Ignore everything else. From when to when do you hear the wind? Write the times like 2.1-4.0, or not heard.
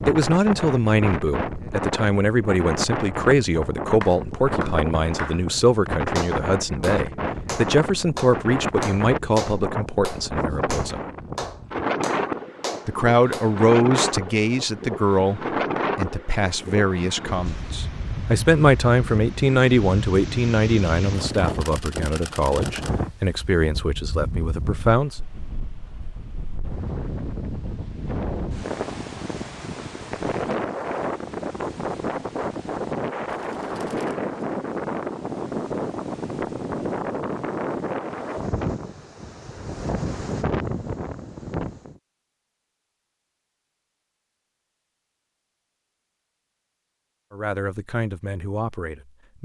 0.0-42.0.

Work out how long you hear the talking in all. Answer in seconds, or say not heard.
25 s.